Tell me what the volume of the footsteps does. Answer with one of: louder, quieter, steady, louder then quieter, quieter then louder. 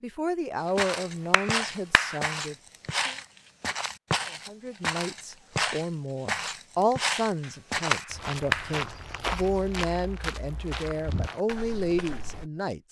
quieter.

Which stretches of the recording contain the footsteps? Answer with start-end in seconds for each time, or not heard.
0.7-12.5.